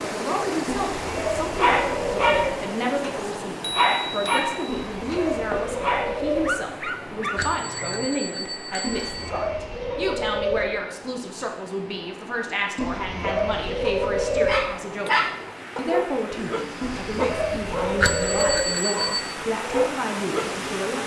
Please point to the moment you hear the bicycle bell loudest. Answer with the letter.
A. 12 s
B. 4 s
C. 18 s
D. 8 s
C.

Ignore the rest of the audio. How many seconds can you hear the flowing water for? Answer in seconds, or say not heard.
21 s.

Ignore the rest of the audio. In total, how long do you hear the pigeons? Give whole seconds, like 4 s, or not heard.
9 s.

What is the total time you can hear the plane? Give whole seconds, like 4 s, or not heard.
not heard.